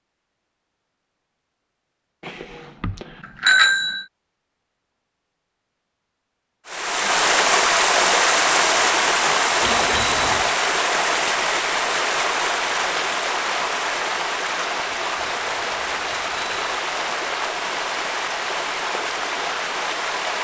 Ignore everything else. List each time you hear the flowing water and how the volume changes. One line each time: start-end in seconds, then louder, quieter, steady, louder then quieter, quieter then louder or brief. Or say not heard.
6.7-20.3 quieter.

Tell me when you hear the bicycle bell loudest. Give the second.
4 s.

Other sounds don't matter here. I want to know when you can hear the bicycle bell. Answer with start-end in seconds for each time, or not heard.
2.2-4.0, 9.6-10.6, 14.9-16.6.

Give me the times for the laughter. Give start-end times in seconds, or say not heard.
not heard.